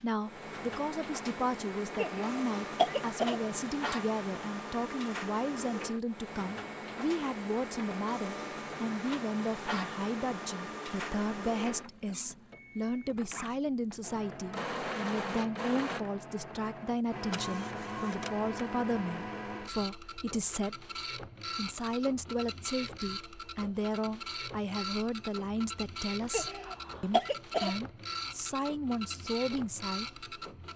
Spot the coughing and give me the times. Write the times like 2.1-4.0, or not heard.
1.9-3.4, 26.3-27.7.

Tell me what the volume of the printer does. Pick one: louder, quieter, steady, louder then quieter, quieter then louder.
steady.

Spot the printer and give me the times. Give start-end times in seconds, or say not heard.
0.0-30.7.